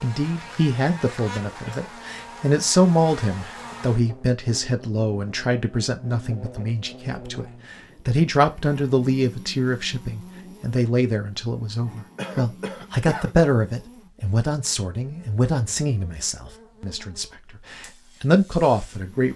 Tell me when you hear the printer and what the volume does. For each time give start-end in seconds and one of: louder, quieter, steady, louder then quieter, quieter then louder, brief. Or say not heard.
not heard.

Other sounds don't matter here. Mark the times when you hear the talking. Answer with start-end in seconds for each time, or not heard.
0.0-19.3.